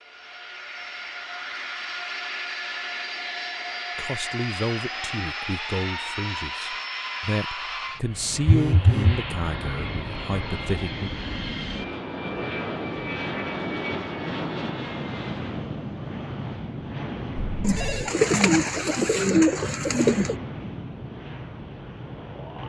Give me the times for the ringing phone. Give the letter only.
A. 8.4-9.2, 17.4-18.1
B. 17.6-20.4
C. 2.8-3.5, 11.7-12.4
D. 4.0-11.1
A.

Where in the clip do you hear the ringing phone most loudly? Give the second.
9 s.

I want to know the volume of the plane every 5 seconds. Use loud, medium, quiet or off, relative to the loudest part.
loud, loud, loud, loud, medium.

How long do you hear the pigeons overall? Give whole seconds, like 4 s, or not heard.
3 s.